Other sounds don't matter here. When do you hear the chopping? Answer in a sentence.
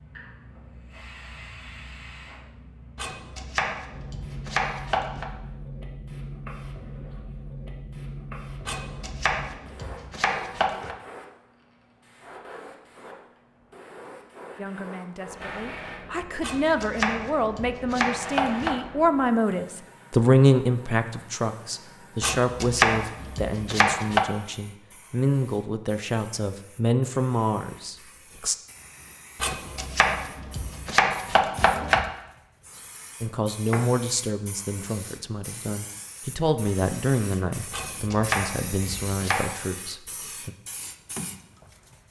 You can hear the chopping from 3.0 to 5.2 s, from 8.7 to 10.9 s, from 16.4 to 18.8 s, from 22.2 to 24.2 s, from 29.4 to 32.1 s and from 37.7 to 39.5 s.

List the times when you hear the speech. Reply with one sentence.
The speech can be heard from 14.6 to 28.6 s and from 33.2 to 40.5 s.